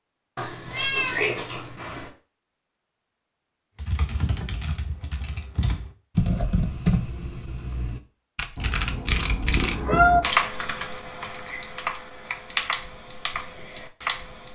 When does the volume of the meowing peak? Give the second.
10 s.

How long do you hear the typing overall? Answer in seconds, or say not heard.
11 s.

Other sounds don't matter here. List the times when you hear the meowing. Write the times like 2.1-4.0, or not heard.
0.3-2.1, 8.6-10.2.